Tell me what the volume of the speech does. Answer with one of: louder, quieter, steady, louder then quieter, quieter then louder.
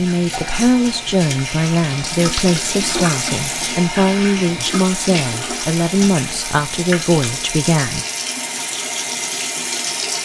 steady.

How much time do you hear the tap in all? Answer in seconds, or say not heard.
10 s.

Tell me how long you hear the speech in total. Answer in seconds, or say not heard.
8 s.